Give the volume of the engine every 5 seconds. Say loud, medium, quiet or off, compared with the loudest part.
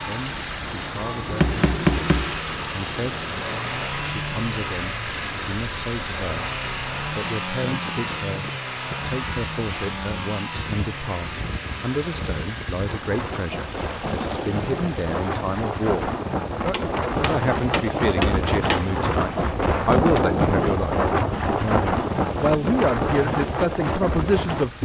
loud, loud, medium, quiet, quiet.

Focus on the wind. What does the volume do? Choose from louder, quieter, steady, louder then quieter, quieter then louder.
louder.